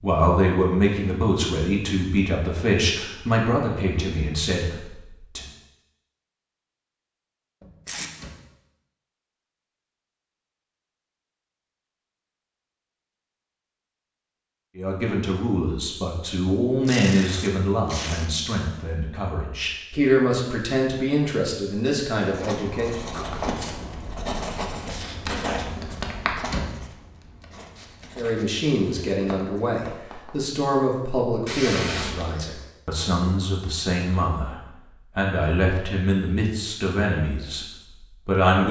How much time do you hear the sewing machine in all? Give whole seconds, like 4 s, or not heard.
not heard.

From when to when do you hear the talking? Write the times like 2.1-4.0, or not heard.
0.0-5.5, 14.8-23.0, 28.1-38.6.